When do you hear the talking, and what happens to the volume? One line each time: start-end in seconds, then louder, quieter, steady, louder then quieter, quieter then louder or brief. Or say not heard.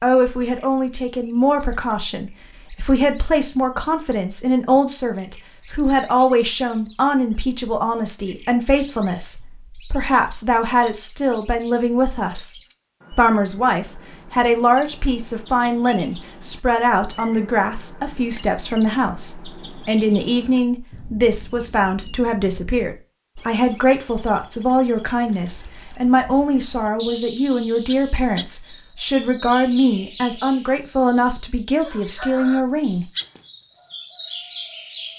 0.0-33.0 steady.